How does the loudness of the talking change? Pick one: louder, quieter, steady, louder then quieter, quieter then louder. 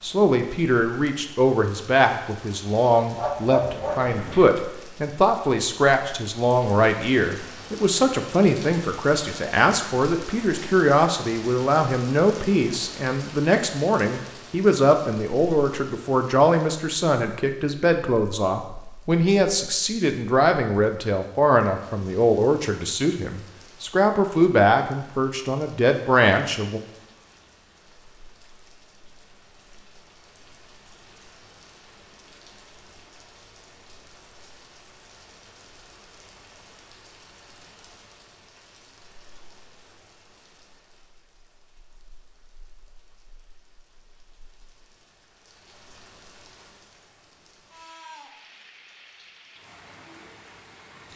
steady.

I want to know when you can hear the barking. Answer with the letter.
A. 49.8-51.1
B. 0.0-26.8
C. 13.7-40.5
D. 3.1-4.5
D.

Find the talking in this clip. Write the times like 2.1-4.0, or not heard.
0.0-26.8.